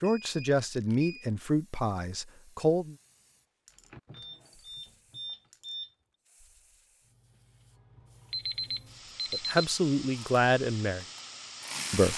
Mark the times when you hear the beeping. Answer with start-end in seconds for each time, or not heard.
0.0-1.2, 4.1-5.9, 8.3-9.7.